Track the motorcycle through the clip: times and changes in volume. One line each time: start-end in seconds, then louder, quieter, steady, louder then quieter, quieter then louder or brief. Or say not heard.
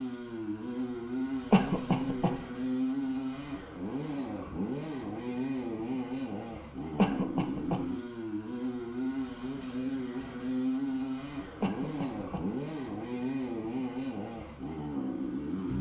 0.0-15.7 steady.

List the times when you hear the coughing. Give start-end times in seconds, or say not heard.
1.5-2.4, 7.0-7.8, 11.6-12.4.